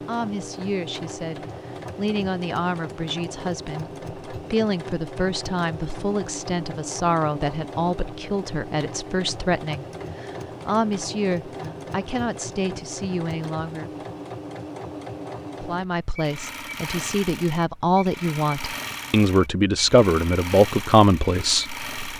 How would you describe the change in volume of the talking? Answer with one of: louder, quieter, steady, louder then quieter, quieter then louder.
louder.